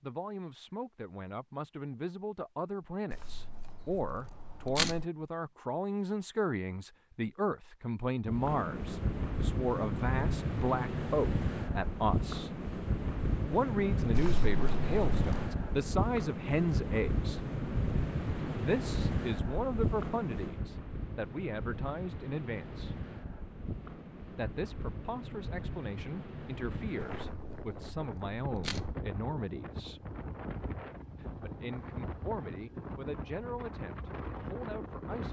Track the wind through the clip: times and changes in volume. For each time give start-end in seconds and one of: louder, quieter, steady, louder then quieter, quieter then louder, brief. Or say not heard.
8.2-35.2 quieter.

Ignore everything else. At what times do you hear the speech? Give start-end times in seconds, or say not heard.
0.0-12.5, 13.4-17.4, 18.6-22.9, 24.4-30.1, 31.2-35.2.